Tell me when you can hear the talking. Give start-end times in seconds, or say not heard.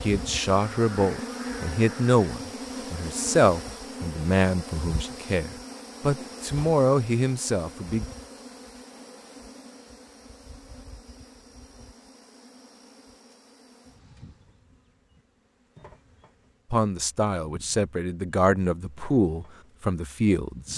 0.0-8.1, 16.7-20.7.